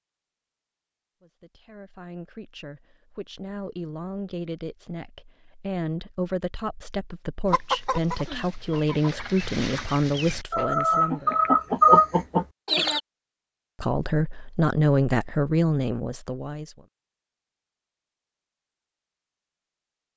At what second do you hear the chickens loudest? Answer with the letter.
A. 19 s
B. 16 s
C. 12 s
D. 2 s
C.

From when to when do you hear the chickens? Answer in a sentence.
The chickens can be heard from 7.5 to 13.0 s.